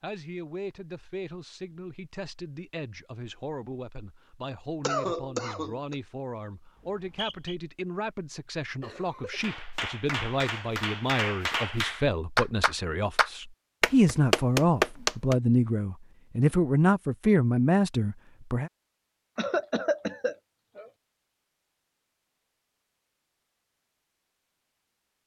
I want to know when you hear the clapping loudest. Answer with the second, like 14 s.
15 s.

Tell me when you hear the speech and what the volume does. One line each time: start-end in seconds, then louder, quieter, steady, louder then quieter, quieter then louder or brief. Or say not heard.
0.0-18.7 louder.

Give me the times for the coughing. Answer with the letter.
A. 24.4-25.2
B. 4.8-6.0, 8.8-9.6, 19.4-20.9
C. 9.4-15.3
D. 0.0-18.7
B.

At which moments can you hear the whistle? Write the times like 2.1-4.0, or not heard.
6.8-7.5.